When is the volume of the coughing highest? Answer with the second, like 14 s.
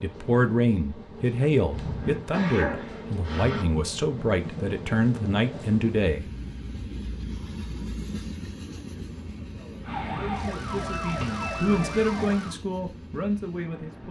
3 s.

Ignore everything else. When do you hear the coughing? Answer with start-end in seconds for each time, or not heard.
1.7-3.6, 11.1-11.5.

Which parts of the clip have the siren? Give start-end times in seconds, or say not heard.
9.8-12.6.